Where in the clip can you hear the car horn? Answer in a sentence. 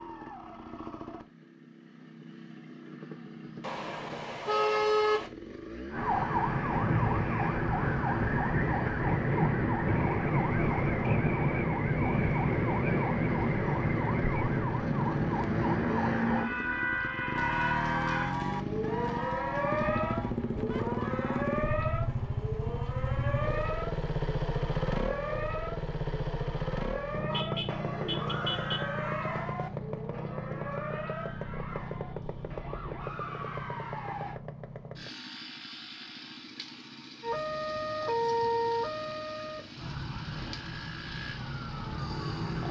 The car horn can be heard from 3.6 to 5.3 s and from 27.3 to 28.9 s.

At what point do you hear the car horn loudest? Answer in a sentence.
The loudest moment of the car horn is at 5 seconds.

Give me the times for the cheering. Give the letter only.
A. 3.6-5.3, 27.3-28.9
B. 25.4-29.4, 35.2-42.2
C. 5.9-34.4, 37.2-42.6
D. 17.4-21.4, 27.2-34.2
D.